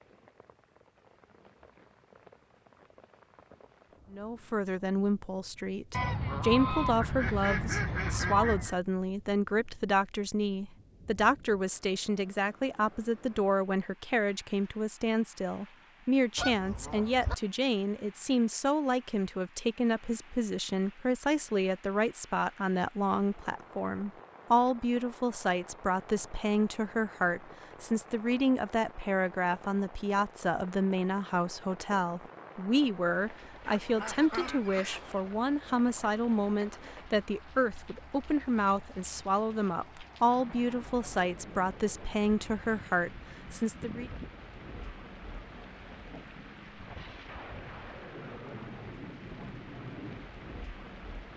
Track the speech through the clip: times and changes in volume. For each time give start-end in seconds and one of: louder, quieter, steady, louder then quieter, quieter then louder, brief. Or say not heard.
4.1-44.1 steady.